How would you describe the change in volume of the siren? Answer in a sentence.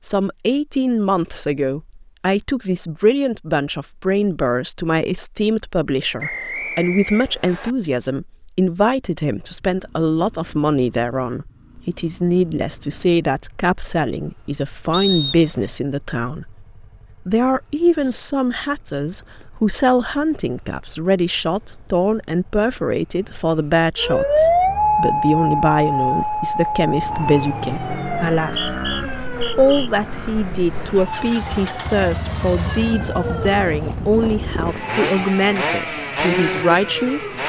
The loudness of the siren goes down.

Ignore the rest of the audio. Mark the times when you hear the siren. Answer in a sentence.
You can hear the siren from 23.9 to 37.4 s.